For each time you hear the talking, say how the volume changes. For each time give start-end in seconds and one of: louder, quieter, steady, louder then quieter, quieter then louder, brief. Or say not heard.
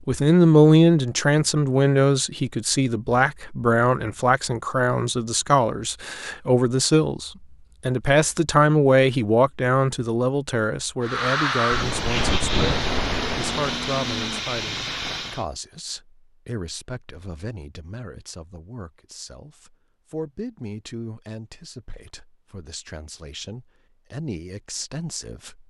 0.1-25.6 quieter.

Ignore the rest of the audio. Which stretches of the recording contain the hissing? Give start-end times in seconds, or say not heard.
11.0-15.4.